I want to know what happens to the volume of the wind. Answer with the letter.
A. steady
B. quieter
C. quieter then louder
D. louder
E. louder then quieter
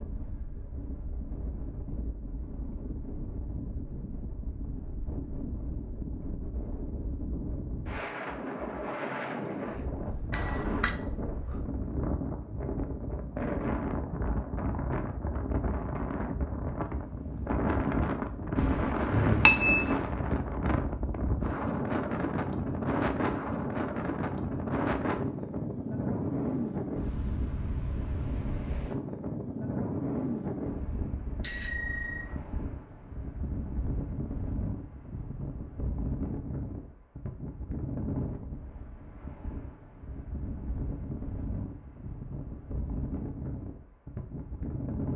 E.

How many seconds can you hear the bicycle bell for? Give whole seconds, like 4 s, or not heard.
3 s.